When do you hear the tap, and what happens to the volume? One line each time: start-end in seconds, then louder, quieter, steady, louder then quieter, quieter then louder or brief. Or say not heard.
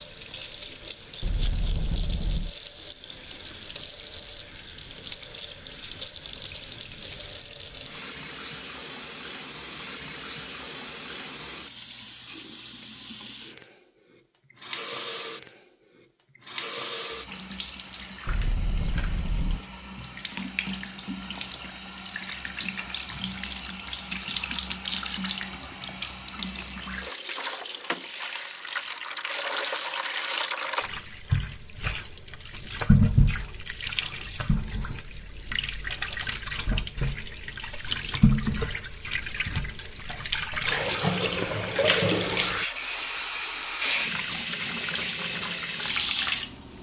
0.0-46.7 louder.